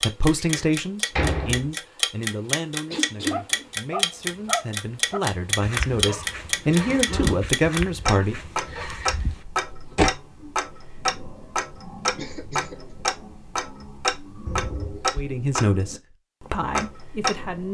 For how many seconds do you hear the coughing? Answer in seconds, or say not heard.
2 s.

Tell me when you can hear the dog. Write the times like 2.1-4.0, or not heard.
3.0-9.4.